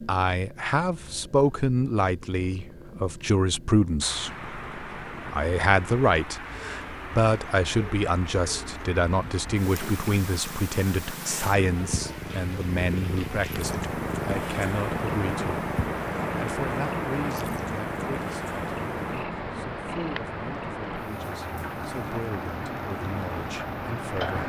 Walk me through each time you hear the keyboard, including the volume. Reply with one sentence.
You can't hear the keyboard here.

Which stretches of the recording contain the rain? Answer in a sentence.
The rain can be heard from 4.0 to 24.4 s.